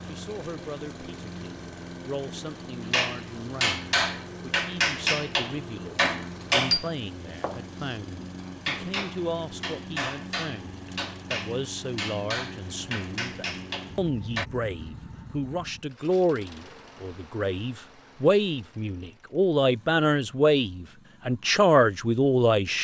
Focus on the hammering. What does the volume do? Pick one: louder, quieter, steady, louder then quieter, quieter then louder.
quieter.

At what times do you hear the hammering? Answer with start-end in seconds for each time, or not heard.
2.9-14.4.